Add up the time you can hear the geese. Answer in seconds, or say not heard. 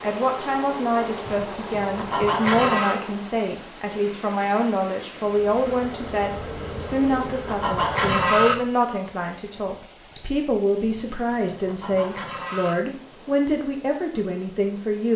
5 s.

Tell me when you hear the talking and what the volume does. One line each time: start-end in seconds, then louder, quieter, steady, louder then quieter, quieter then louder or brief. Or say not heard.
0.0-15.1 steady.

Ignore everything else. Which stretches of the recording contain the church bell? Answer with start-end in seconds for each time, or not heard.
not heard.